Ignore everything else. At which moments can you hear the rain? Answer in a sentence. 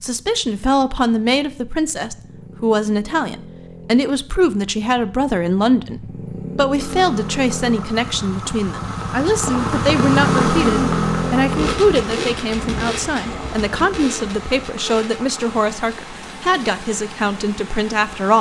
The rain can be heard from 6.8 to 18.3 s.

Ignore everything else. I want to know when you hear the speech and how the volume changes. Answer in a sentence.
The speech can be heard from 0.0 to 18.3 s, at a steady volume.